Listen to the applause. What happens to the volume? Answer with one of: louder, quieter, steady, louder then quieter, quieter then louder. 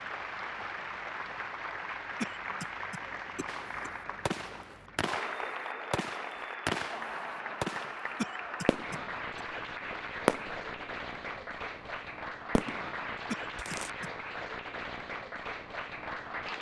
steady.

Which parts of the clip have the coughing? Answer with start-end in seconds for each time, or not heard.
2.2-3.9, 8.2-9.4, 13.3-14.1.